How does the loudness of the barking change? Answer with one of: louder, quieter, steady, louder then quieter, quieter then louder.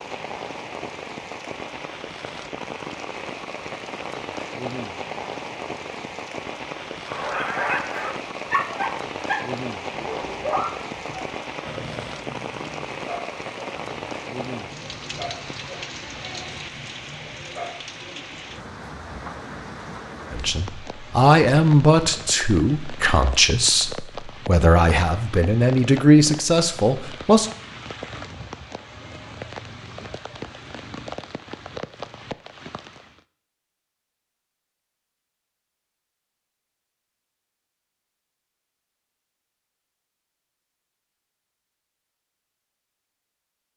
quieter.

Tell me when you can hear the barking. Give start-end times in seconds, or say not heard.
7.0-17.9.